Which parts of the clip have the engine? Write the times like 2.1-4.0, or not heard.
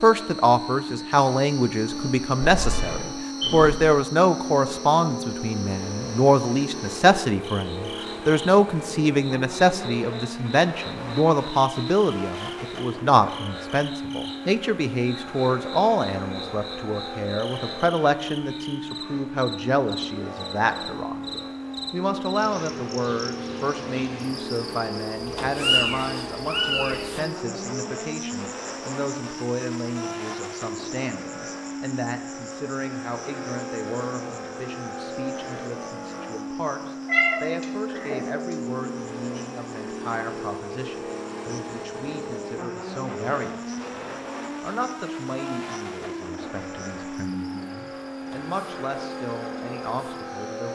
0.0-50.7.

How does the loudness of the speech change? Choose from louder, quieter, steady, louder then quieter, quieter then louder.
quieter.